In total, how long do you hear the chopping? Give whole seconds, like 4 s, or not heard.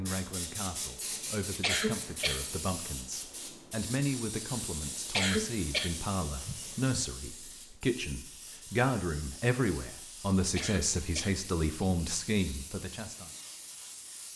not heard.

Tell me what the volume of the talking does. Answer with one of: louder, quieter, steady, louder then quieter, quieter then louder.
louder.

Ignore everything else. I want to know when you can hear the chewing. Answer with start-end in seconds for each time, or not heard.
not heard.